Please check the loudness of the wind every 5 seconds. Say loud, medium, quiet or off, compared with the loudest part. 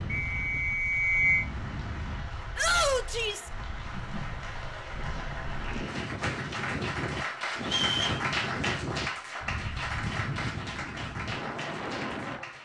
medium, loud, loud.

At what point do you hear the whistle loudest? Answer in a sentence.
The loudest moment of the whistle is at 1 second.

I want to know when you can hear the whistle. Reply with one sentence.
The whistle can be heard from 0.1 to 1.4 s and from 7.6 to 8.2 s.